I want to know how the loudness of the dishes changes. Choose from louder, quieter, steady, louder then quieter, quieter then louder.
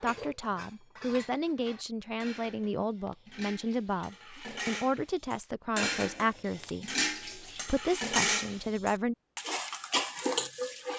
louder.